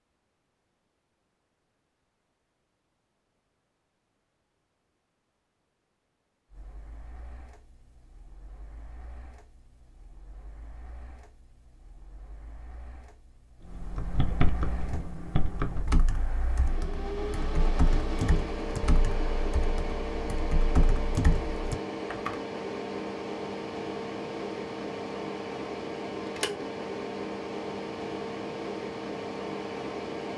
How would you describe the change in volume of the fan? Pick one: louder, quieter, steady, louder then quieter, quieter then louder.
louder.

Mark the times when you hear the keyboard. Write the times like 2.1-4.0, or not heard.
13.8-22.4.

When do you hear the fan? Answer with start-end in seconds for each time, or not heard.
6.5-30.3.